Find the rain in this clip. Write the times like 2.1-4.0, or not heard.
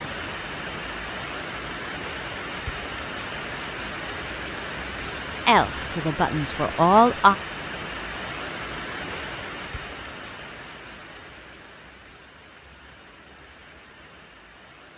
0.0-14.9.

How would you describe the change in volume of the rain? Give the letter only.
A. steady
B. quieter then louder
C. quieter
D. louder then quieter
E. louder
C.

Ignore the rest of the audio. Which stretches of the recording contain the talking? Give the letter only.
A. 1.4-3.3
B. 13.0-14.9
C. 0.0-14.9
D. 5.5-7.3
D.